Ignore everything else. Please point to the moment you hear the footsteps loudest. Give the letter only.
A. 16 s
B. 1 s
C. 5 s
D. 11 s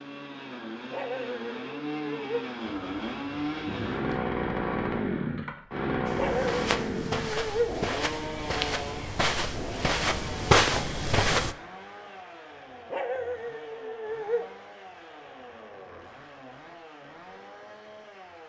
D.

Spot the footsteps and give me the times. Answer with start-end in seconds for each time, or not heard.
6.0-11.6.